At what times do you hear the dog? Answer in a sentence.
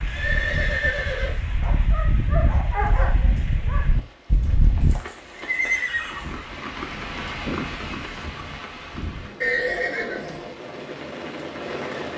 The dog can be heard from 0.0 to 5.0 s.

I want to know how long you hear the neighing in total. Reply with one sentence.
You can hear the neighing for 4 seconds altogether.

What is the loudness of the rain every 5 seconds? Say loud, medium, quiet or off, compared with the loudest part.
medium, loud, loud.